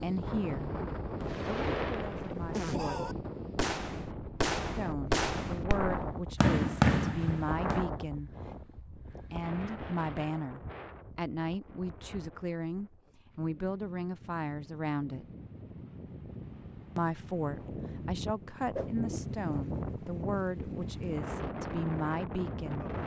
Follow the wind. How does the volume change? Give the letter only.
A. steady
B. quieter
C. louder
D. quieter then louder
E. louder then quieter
D.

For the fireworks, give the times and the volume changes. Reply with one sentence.
You can hear the fireworks from 1.2 to 7.8 s, getting louder.